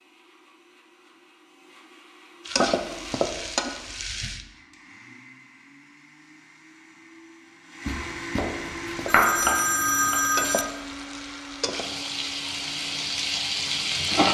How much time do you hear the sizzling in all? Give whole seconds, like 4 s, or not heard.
7 s.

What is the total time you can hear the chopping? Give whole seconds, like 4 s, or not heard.
2 s.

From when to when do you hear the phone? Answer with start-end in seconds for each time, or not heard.
9.1-10.7.